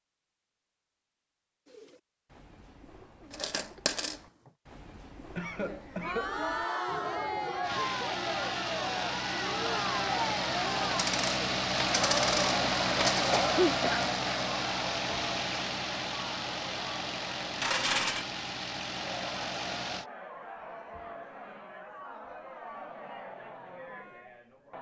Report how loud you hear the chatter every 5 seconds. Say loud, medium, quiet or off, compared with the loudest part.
off, loud, loud, medium, medium.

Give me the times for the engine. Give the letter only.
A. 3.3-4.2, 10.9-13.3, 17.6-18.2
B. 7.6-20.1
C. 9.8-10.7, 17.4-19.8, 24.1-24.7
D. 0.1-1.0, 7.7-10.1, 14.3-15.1
B.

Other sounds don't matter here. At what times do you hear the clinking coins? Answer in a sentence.
You can hear the clinking coins from 3.3 to 4.2 s, from 10.9 to 13.3 s and from 17.6 to 18.2 s.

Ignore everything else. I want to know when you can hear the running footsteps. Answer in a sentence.
The running footsteps can't be heard in this clip.